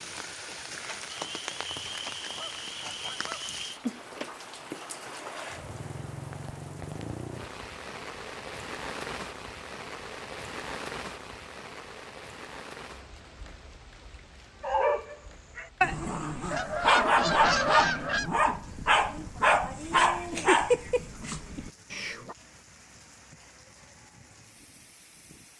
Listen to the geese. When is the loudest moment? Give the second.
18 s.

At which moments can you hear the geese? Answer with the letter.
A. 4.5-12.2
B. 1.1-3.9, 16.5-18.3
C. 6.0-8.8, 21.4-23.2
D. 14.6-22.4
B.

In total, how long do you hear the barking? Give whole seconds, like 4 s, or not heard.
8 s.